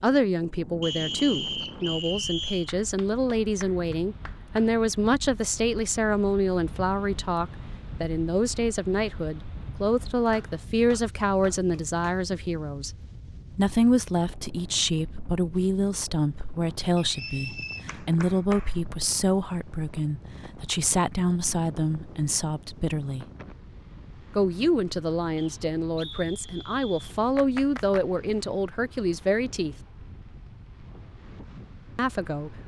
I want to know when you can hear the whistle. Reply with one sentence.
You can hear the whistle from 0.8 to 2.7 s, from 16.9 to 17.9 s and from 25.4 to 27.2 s.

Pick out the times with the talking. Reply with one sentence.
The talking can be heard from 0.0 to 12.9 s, from 13.5 to 23.2 s, from 24.4 to 29.8 s and from 31.9 to 32.5 s.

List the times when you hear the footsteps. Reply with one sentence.
The footsteps can't be heard in this clip.